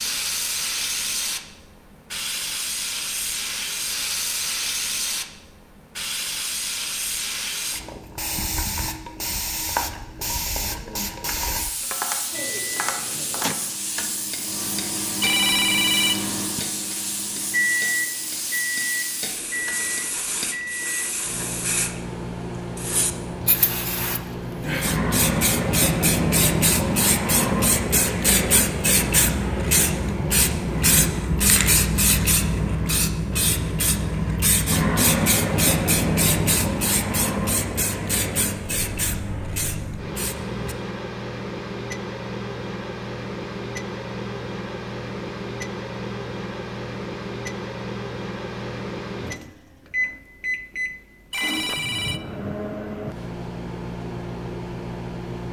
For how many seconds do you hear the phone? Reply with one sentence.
The phone can be heard for 2 seconds in total.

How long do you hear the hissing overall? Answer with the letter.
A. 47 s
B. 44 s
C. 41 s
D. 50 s
C.